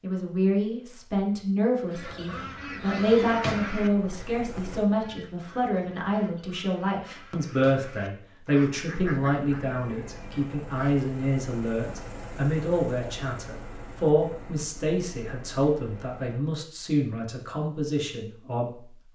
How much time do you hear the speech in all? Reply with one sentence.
You can hear the speech for 19 seconds altogether.